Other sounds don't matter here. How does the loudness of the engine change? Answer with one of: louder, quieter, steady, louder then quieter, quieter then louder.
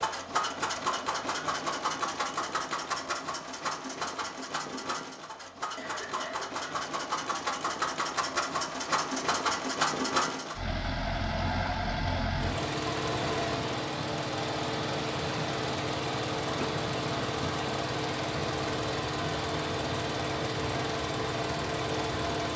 steady.